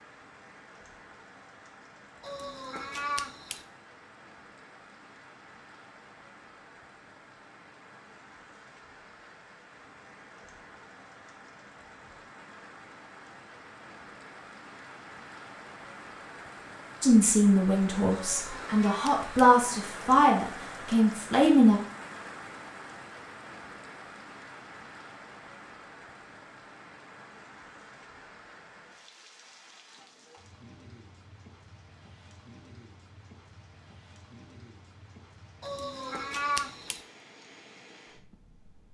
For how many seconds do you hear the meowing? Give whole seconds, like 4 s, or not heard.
4 s.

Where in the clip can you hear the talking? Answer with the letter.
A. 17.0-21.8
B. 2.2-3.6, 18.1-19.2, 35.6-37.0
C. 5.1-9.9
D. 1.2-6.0
A.